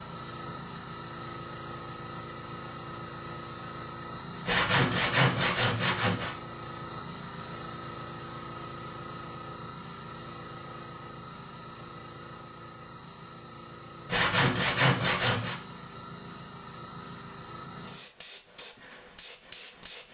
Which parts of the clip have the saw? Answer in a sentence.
You can hear the saw from 4.5 to 6.3 s and from 14.1 to 15.6 s.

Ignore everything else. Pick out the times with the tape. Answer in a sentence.
The tape can't be heard in this clip.